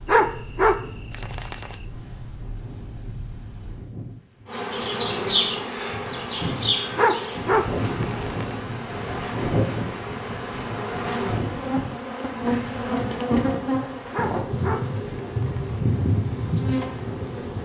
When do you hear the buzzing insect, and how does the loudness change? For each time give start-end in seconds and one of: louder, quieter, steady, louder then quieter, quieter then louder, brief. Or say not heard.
4.5-17.6 quieter then louder.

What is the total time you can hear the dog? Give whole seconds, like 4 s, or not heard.
5 s.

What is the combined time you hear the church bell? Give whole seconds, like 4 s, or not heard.
not heard.